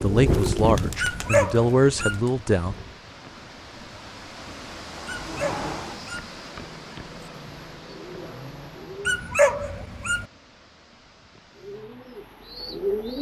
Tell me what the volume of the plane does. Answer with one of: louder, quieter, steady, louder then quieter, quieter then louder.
quieter.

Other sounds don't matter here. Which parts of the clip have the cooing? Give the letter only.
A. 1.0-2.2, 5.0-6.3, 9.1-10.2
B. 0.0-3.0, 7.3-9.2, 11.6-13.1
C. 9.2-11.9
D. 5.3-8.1
B.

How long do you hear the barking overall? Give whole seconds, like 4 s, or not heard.
4 s.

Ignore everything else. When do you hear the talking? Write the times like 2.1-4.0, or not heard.
0.0-2.8.